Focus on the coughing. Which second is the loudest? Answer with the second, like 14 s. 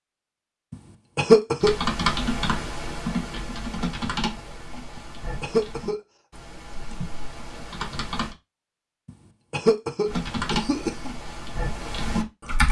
1 s.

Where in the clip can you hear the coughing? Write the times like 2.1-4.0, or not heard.
0.7-1.8, 5.0-6.0, 9.1-11.1.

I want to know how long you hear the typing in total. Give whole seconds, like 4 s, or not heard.
9 s.